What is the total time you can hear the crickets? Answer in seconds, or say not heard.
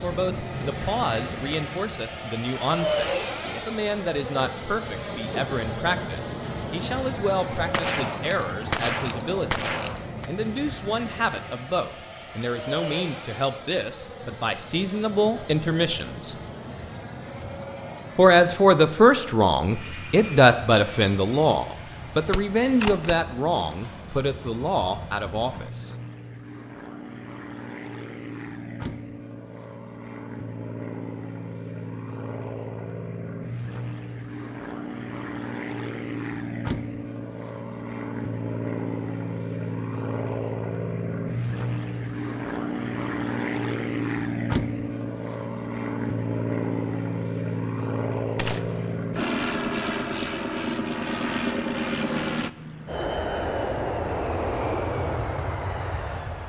not heard.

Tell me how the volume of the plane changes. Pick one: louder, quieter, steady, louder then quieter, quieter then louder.
quieter then louder.